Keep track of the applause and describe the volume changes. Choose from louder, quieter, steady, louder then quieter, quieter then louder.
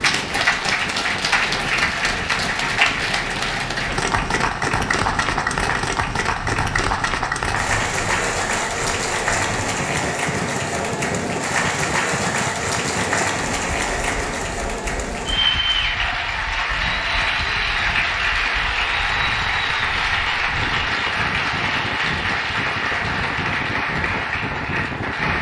steady.